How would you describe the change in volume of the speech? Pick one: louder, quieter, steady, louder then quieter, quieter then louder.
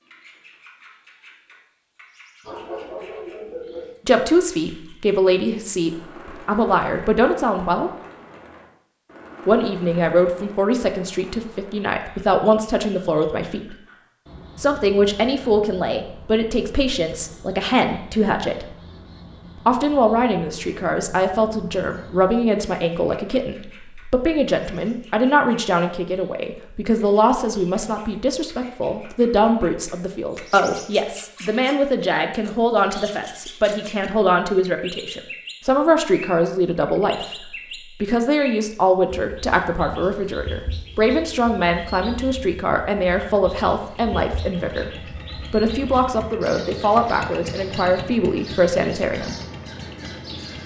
steady.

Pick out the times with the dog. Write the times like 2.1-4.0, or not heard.
2.5-4.0.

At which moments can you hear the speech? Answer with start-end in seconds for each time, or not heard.
4.0-7.9, 9.4-13.8, 14.6-18.6, 19.6-49.4.